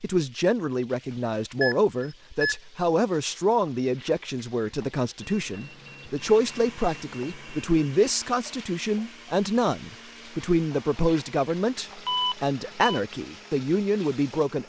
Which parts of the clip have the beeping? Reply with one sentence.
The beeping can be heard from 1.6 to 2.5 s, from 5.2 to 7.7 s and from 12.1 to 13.0 s.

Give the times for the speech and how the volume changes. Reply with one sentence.
You can hear the speech from 0.0 to 14.6 s, at a steady volume.